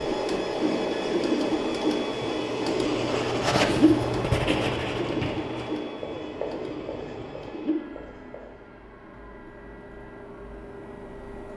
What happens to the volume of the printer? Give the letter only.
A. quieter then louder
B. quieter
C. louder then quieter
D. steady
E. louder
B.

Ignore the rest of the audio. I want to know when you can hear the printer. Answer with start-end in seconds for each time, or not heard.
0.0-11.5.